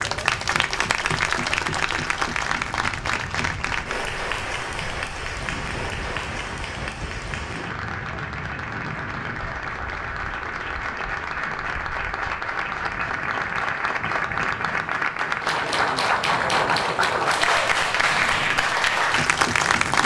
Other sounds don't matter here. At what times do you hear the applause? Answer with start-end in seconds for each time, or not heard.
0.0-20.0.